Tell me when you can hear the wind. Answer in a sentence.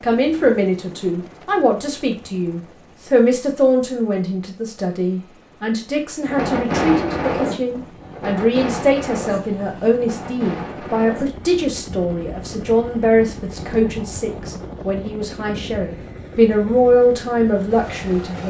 You can hear the wind from 6.2 to 18.4 s.